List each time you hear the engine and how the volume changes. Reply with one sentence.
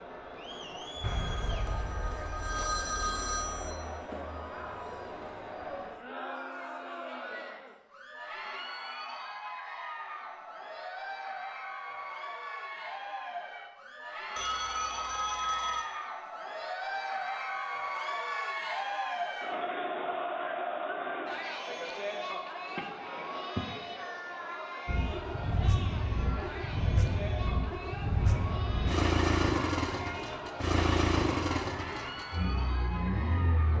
You can hear the engine from 24.9 to 33.7 s, getting louder then quieter.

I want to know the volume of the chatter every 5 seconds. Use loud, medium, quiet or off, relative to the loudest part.
medium, medium, medium, loud, loud, medium, medium.